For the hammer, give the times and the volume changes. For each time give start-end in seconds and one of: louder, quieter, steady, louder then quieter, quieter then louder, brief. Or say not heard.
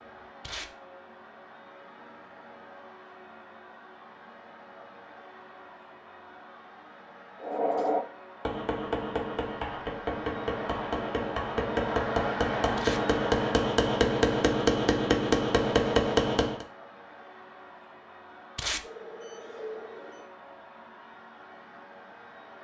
7.4-16.6 louder.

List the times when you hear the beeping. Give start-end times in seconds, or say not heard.
18.8-20.3.